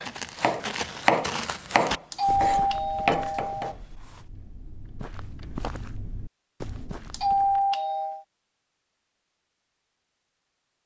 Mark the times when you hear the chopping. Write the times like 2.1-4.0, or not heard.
0.0-4.2.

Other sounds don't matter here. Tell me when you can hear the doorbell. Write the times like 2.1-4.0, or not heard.
2.1-3.8, 7.1-8.2.